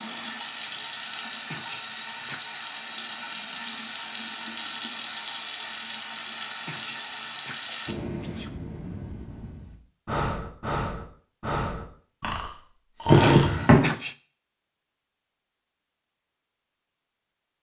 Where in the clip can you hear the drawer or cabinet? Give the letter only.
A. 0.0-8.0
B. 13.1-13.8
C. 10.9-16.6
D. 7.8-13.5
B.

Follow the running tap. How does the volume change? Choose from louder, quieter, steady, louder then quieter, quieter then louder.
steady.